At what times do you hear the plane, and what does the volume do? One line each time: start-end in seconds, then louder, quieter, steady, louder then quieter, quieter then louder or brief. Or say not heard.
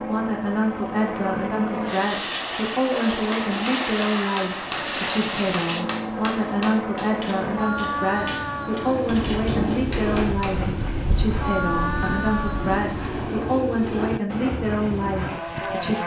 0.0-16.0 steady.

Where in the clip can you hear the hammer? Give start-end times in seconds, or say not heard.
2.1-10.7.